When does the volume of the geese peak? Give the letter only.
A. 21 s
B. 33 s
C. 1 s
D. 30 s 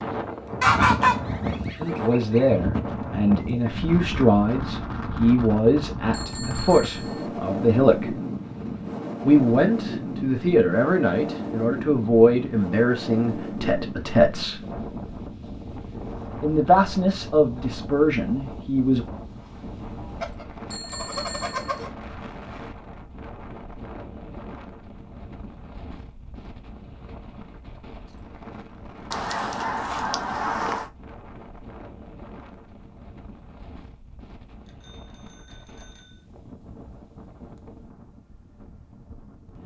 C.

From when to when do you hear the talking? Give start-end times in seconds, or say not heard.
1.8-8.2, 9.2-14.6, 16.4-19.1.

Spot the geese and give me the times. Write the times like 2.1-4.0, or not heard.
0.6-2.5, 20.2-21.9, 29.1-30.9.